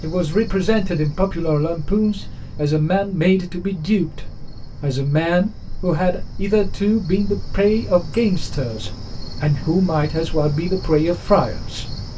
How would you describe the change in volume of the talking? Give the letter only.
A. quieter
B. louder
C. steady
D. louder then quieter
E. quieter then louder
C.